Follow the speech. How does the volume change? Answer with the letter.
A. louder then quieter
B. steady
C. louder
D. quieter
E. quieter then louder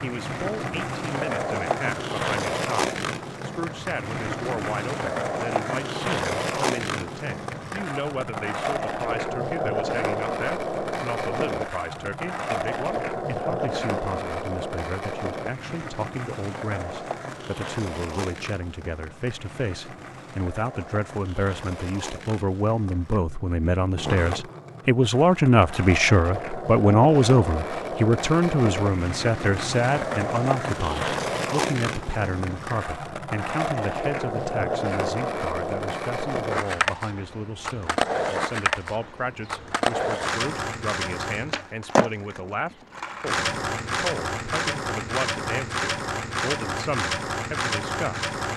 A.